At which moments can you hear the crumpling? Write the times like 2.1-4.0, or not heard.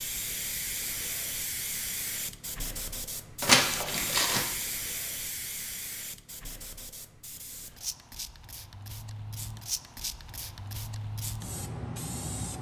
3.4-4.5.